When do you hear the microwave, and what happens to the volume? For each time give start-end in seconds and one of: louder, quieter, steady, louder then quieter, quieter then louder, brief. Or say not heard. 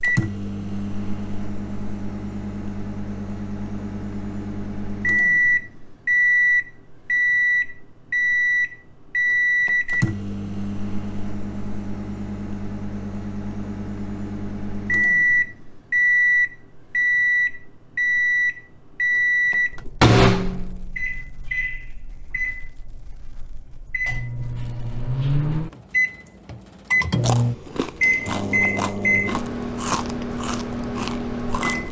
0.0-31.8 steady.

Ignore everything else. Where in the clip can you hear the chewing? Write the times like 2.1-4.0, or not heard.
27.2-31.8.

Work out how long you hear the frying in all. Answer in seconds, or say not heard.
not heard.